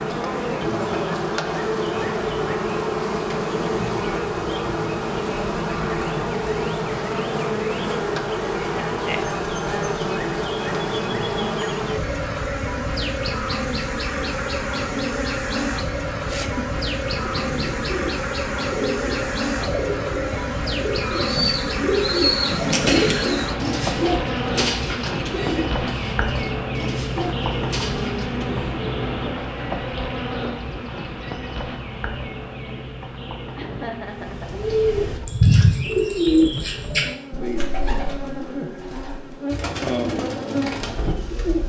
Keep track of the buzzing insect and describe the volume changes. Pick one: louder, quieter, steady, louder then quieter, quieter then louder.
quieter.